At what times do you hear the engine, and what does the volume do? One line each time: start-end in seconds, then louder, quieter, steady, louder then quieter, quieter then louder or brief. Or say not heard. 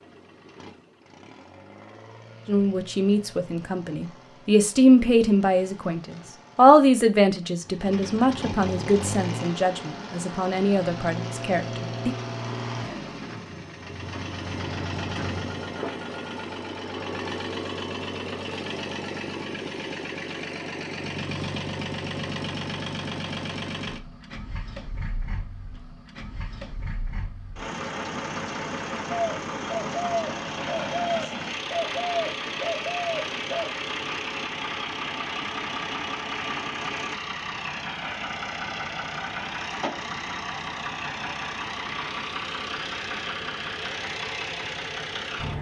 0.0-45.5 louder.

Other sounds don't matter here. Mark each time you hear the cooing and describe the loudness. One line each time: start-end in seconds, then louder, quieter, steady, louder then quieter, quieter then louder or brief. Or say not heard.
29.1-33.8 steady.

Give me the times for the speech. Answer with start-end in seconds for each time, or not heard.
2.5-12.2.